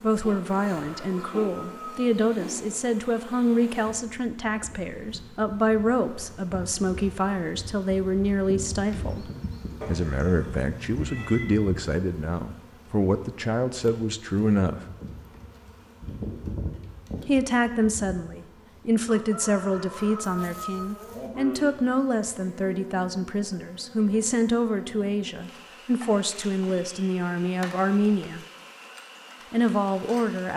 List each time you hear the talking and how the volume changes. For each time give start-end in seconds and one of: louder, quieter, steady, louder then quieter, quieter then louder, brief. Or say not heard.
0.0-14.8 steady
17.2-28.4 steady
29.5-30.5 brief.